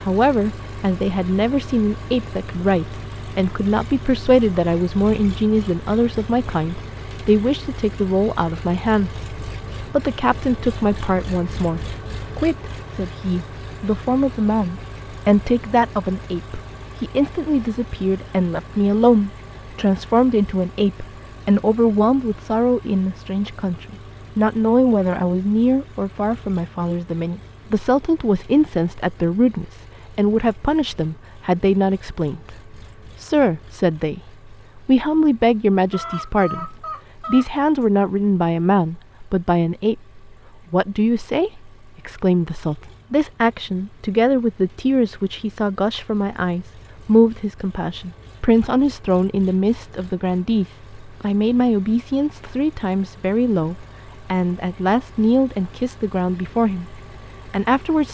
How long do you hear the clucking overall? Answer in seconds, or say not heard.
2 s.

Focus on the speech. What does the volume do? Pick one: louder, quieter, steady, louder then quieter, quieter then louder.
steady.